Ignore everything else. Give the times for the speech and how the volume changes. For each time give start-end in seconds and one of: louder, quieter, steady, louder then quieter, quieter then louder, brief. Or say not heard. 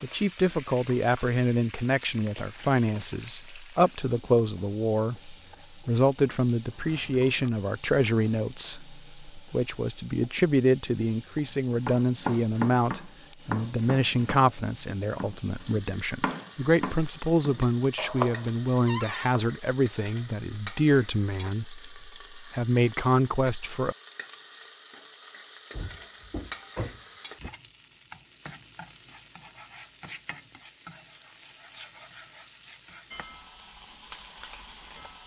0.0-23.9 steady.